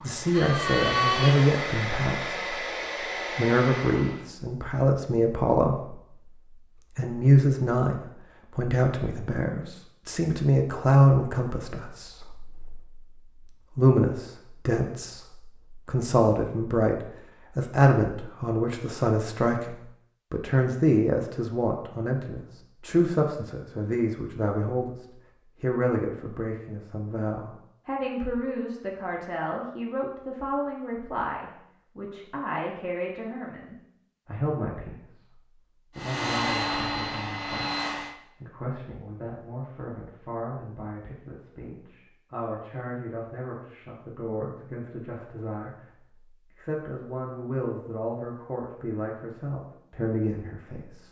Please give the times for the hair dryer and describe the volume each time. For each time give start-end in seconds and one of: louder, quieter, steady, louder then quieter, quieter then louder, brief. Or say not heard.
0.0-4.2 quieter
36.0-38.1 brief.